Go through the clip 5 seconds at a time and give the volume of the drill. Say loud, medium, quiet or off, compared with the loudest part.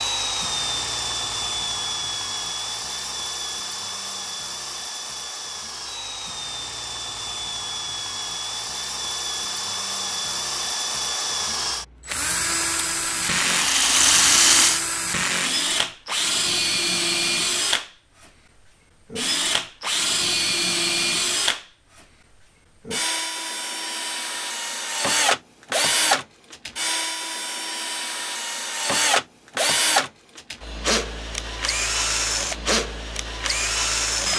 medium, medium, loud, loud, loud, loud, loud.